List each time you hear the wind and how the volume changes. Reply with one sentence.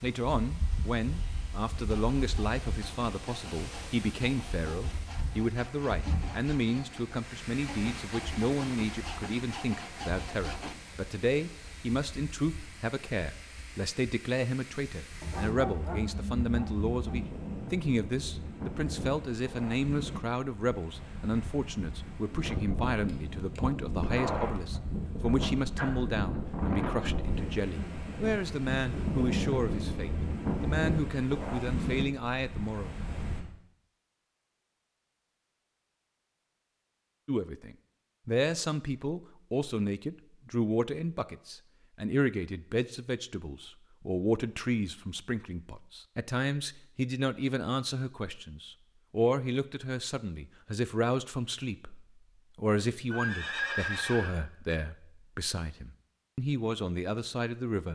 You can hear the wind from 0.0 to 33.4 s, getting louder.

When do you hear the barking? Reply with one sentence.
The barking can be heard from 15.2 to 17.2 s.